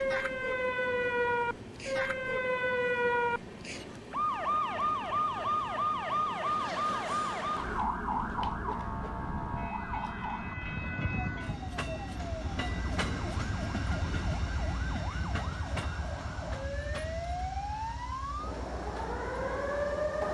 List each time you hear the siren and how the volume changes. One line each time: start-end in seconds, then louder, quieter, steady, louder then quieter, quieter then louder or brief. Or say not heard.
0.0-20.3 quieter then louder.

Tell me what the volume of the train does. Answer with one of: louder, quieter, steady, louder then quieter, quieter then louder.
louder then quieter.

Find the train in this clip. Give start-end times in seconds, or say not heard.
0.0-20.3.